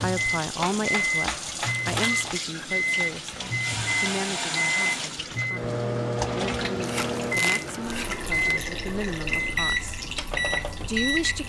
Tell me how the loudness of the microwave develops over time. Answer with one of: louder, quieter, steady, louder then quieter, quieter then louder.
steady.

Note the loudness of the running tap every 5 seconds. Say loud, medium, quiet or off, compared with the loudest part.
loud, loud, medium.